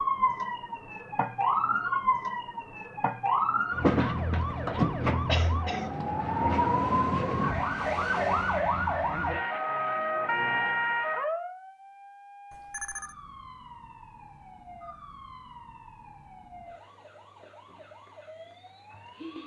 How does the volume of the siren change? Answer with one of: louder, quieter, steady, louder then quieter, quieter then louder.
quieter.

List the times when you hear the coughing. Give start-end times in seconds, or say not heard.
5.2-5.9.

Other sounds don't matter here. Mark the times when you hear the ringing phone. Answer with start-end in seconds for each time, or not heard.
12.5-13.2.